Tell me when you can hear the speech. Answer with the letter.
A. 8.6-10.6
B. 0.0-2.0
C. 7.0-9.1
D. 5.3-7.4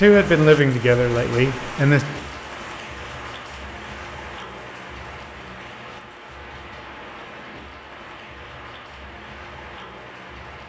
B.